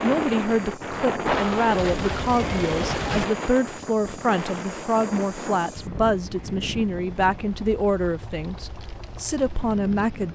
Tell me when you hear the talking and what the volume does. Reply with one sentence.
You can hear the talking from 0.0 to 10.3 s, at a steady volume.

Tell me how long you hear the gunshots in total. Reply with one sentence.
You can hear the gunshots for 2 seconds altogether.